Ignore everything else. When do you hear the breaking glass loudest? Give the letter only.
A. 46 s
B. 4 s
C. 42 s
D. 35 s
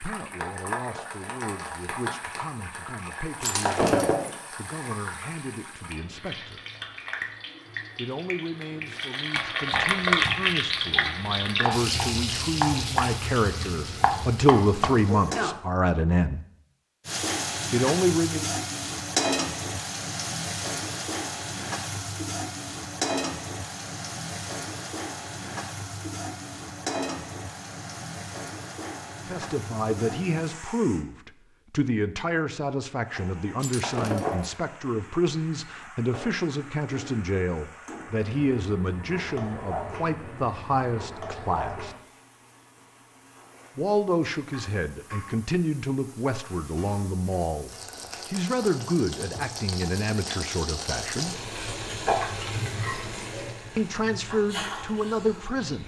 B.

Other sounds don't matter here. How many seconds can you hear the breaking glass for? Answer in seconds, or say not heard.
2 s.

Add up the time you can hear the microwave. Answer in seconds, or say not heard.
not heard.